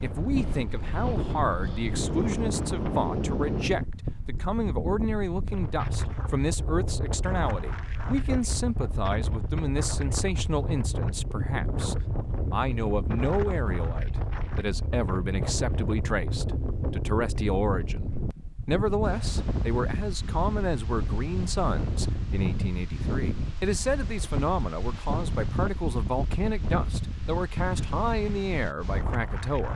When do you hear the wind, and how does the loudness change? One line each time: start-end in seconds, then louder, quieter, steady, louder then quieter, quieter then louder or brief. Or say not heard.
0.0-29.7 steady.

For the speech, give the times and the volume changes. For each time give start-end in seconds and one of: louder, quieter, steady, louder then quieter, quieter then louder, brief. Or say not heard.
0.0-29.7 steady.